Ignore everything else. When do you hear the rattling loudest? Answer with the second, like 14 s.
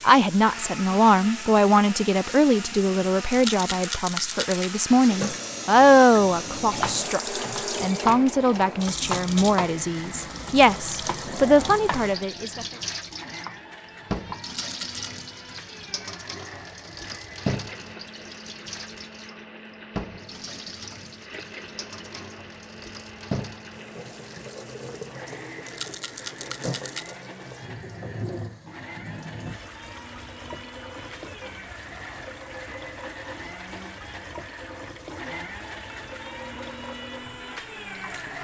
4 s.